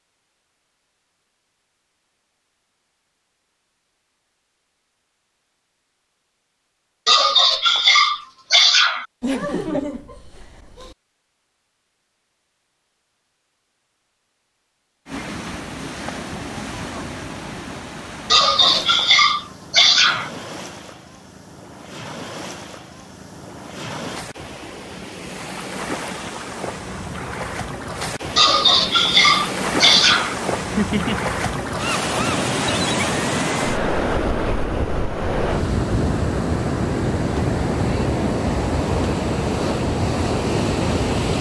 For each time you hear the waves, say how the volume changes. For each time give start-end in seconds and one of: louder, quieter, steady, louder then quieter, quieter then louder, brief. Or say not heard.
15.1-41.3 louder.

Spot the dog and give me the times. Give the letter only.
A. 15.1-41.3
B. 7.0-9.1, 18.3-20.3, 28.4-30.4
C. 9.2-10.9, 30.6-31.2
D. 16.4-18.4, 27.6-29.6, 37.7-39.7
B.